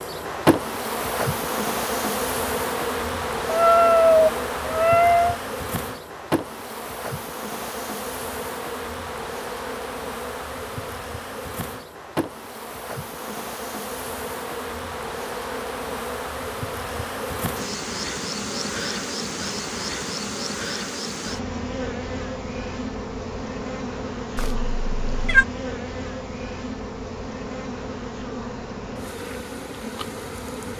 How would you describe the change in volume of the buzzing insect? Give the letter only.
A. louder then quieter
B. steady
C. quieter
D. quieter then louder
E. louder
C.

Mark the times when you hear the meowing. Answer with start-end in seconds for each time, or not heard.
3.5-5.3, 24.4-25.4.